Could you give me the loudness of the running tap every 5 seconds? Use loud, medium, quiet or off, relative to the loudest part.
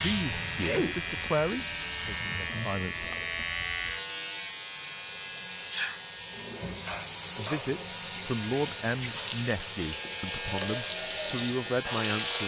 medium, loud, loud.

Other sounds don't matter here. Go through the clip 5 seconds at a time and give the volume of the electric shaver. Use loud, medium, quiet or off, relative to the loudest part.
loud, medium, loud.